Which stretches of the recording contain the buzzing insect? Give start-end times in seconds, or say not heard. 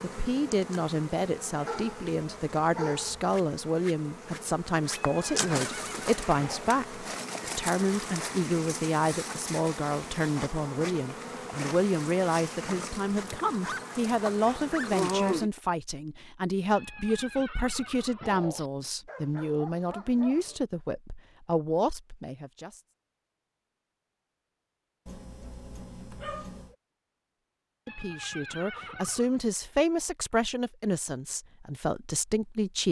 0.0-15.5.